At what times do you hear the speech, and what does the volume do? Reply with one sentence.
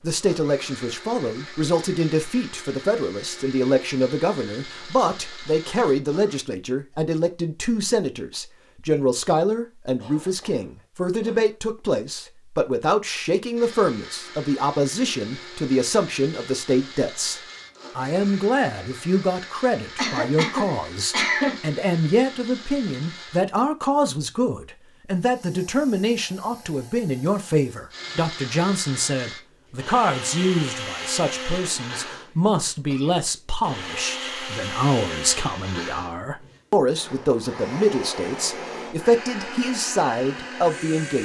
You can hear the speech from 0.0 to 41.2 s, at a steady volume.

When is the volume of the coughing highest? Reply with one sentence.
The loudest moment of the coughing is at 21 seconds.